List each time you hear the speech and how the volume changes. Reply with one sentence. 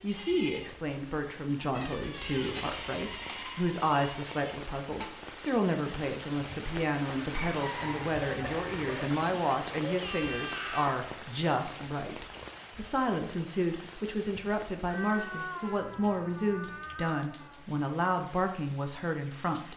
You can hear the speech from 0.0 to 19.7 s, at a steady volume.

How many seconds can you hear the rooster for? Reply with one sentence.
The rooster can be heard for 2 seconds in total.